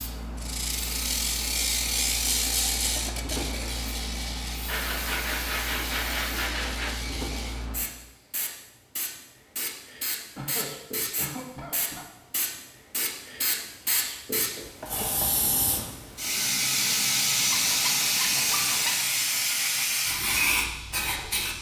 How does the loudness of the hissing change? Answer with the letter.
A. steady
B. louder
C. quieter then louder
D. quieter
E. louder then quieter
B.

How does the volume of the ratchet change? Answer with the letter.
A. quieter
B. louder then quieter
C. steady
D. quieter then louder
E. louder
A.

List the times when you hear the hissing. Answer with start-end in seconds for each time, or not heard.
0.0-21.5.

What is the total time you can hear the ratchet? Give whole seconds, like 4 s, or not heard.
7 s.